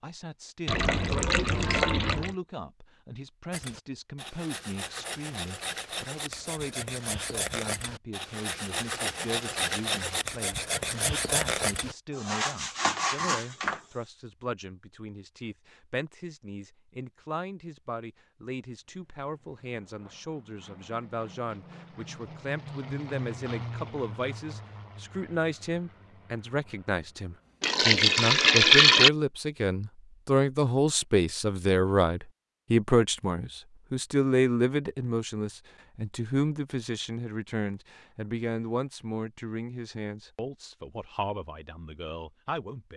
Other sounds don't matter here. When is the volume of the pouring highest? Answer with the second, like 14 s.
29 s.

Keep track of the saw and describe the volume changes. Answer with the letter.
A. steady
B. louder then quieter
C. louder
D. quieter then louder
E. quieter
C.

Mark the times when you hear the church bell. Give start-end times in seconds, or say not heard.
not heard.